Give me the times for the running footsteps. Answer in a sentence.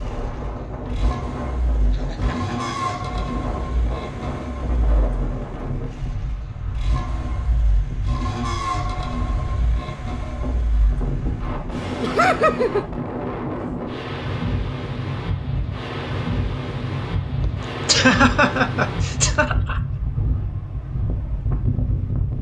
The running footsteps can't be heard in this clip.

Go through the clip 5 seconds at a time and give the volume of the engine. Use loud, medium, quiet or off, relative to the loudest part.
loud, loud, loud, off, off.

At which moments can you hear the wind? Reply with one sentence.
You can hear the wind from 0.0 to 22.3 s.